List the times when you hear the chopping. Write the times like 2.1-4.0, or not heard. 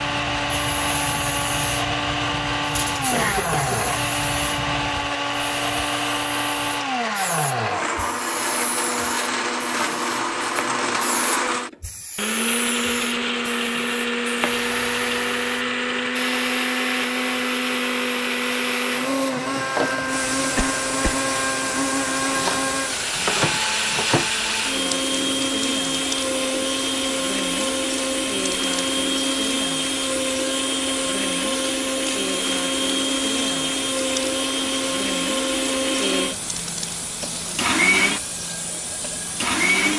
22.4-24.3.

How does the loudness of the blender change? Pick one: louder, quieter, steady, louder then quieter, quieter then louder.
steady.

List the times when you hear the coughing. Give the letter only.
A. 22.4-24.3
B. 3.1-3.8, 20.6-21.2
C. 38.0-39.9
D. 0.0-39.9
B.